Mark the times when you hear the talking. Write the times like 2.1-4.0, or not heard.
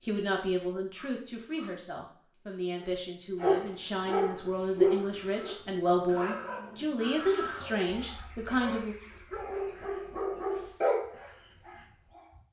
0.0-8.9.